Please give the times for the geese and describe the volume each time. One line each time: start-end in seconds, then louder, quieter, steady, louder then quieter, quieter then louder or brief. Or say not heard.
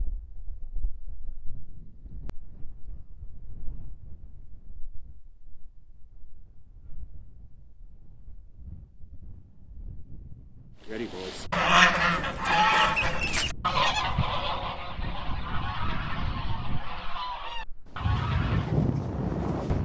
10.8-18.8 quieter.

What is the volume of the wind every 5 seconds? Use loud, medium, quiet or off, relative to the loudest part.
quiet, quiet, quiet, loud.